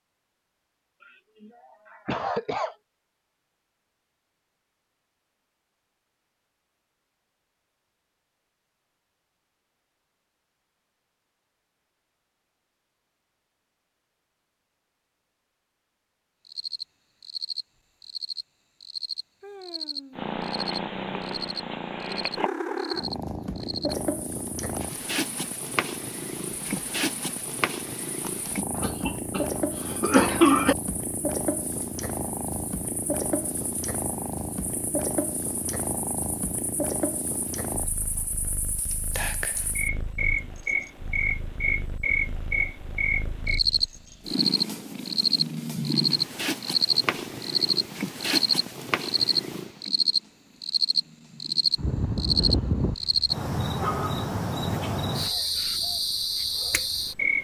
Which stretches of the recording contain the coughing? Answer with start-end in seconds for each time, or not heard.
1.1-2.8, 28.8-30.8, 51.8-53.3.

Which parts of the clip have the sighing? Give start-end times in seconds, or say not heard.
19.4-20.3.